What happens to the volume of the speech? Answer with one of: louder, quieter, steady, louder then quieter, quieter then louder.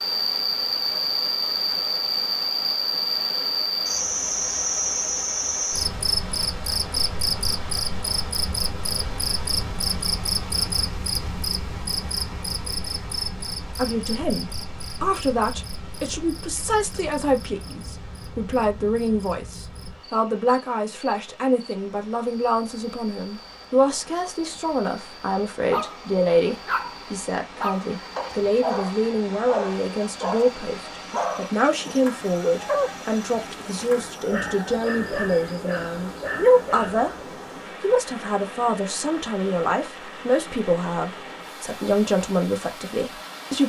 steady.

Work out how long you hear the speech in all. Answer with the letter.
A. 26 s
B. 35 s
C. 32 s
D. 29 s
D.